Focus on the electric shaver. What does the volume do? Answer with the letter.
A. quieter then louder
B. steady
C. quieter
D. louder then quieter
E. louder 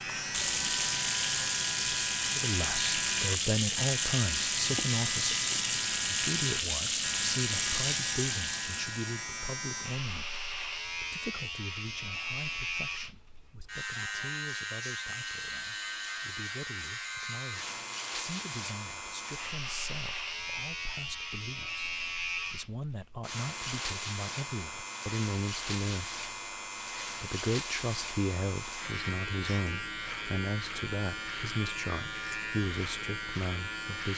B.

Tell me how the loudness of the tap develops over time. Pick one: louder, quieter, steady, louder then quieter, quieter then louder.
steady.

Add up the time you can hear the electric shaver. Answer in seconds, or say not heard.
34 s.